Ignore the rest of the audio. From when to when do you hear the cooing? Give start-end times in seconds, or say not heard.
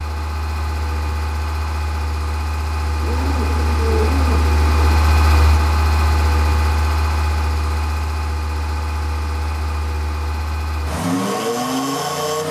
3.0-5.0.